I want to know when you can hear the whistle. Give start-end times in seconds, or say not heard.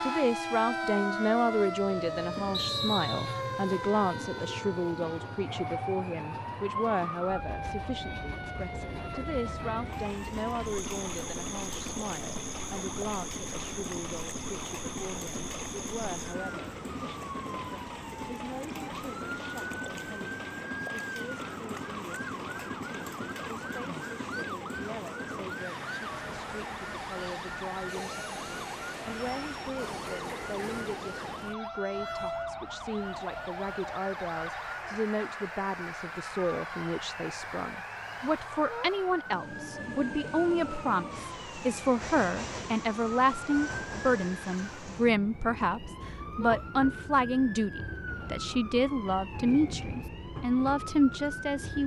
2.5-3.4.